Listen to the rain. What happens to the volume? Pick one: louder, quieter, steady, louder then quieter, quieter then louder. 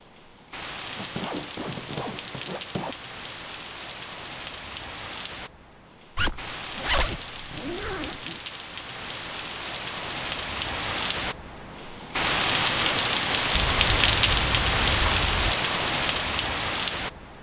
louder.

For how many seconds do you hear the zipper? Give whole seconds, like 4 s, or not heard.
6 s.